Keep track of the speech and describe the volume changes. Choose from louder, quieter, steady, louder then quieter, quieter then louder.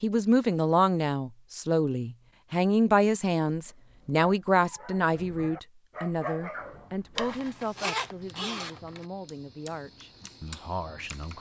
quieter.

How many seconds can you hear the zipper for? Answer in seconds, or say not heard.
2 s.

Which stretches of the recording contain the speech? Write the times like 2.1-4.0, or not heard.
0.0-11.3.